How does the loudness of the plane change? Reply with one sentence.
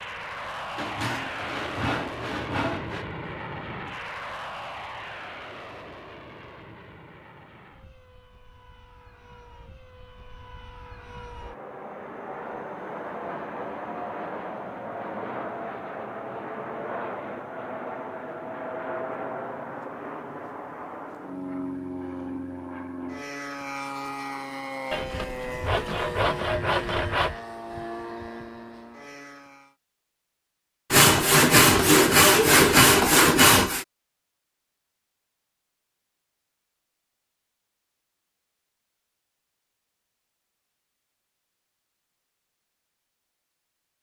The volume of the plane goes down, then up.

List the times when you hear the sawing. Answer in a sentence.
You can hear the sawing from 0.8 to 3.0 s, from 24.9 to 27.4 s and from 30.9 to 33.9 s.